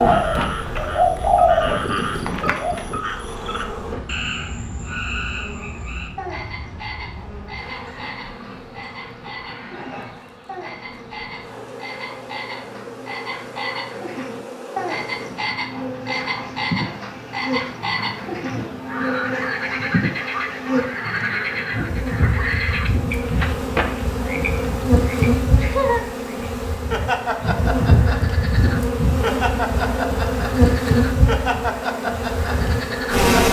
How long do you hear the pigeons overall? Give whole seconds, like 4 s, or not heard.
3 s.